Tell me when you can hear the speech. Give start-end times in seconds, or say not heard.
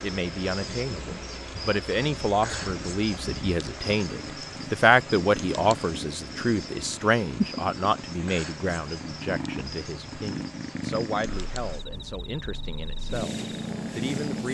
0.0-14.4.